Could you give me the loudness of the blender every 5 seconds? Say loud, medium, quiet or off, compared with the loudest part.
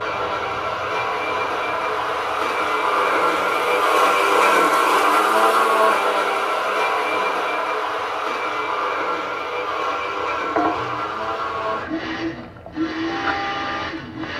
loud, loud, medium.